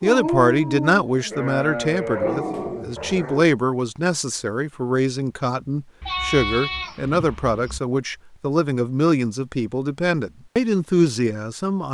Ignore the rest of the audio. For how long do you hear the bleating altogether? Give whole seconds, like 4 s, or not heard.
3 s.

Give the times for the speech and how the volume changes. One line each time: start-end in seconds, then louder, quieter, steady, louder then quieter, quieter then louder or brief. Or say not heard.
0.0-11.8 steady.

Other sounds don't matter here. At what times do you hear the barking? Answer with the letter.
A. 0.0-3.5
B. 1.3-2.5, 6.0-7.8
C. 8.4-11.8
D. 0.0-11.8
A.